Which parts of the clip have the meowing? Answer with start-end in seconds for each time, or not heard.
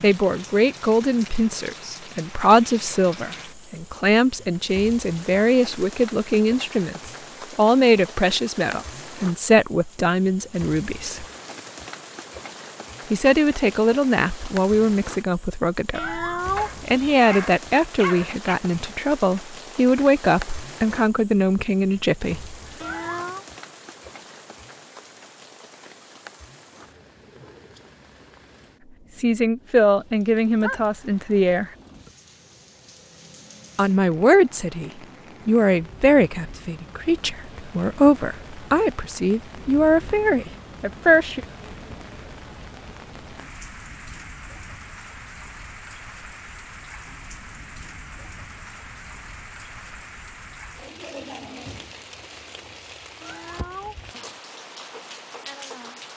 15.9-17.1, 22.8-23.4, 53.2-54.4.